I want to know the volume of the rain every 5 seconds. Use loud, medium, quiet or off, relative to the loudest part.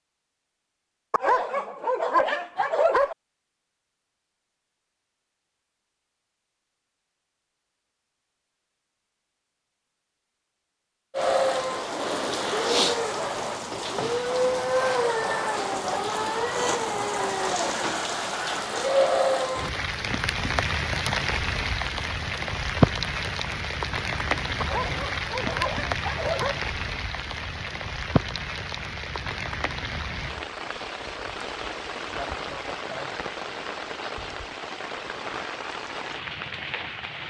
off, off, loud, loud, loud, medium, medium, medium.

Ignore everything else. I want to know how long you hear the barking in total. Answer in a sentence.
You can hear the barking for 4 seconds altogether.